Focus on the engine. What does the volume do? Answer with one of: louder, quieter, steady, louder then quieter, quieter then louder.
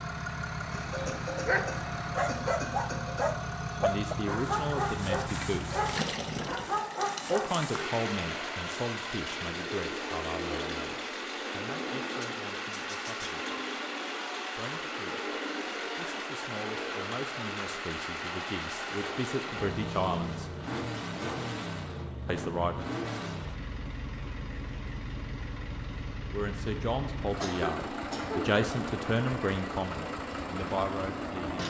steady.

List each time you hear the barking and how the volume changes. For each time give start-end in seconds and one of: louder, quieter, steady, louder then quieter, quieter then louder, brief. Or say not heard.
0.9-7.9 steady.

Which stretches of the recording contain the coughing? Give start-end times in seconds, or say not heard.
0.7-3.3, 27.4-28.6.